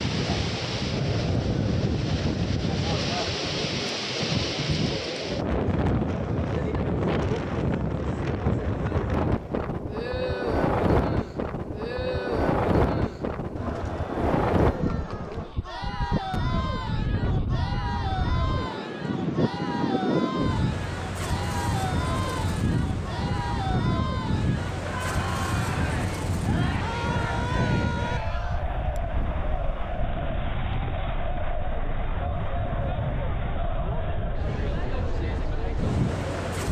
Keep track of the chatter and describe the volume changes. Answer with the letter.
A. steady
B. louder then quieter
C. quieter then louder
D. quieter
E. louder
A.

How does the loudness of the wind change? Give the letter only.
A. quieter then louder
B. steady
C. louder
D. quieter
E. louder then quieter
D.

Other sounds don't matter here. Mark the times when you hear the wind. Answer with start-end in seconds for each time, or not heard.
0.0-36.6.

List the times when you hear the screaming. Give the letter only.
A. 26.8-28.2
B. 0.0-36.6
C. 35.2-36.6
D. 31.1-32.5
A.